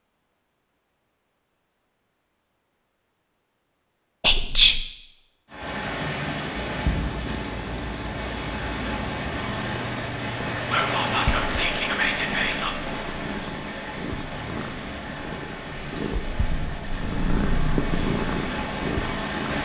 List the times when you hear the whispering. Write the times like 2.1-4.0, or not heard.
4.2-4.8, 10.7-12.7.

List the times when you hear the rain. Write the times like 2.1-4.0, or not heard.
5.5-19.5.